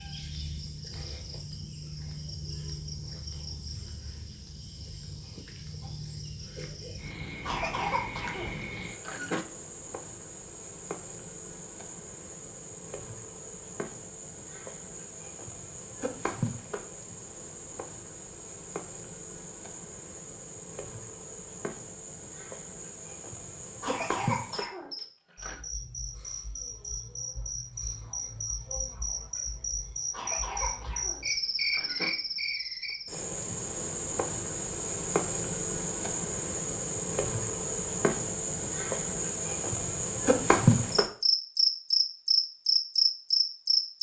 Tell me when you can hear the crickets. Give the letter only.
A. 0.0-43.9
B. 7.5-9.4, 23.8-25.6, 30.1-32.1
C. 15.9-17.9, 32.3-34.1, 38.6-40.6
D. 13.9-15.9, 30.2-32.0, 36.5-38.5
A.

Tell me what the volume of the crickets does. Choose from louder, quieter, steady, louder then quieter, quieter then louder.
louder.